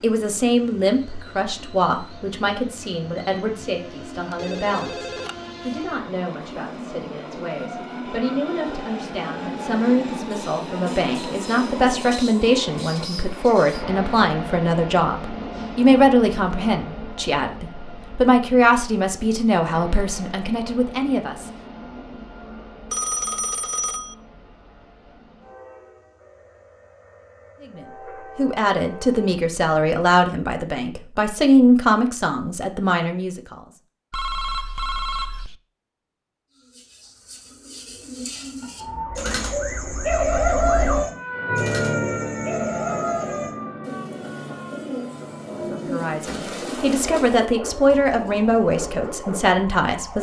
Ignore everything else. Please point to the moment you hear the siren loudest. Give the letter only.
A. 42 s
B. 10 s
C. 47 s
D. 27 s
A.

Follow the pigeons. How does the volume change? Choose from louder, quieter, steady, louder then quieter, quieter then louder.
louder then quieter.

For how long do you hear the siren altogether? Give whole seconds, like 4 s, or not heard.
11 s.